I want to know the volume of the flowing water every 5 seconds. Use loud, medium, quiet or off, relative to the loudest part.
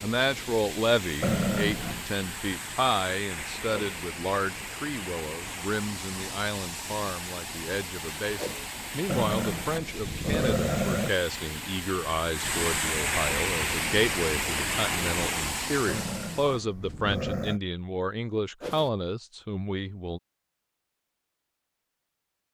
medium, medium, loud, loud, off.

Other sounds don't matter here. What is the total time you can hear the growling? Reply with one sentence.
The growling can be heard for 5 seconds in total.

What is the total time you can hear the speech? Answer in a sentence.
You can hear the speech for 20 seconds altogether.